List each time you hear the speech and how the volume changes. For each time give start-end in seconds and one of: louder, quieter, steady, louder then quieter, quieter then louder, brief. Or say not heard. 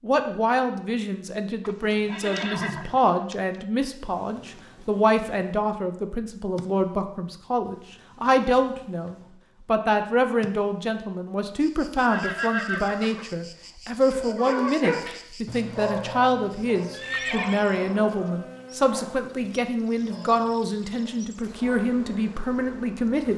0.0-23.3 steady.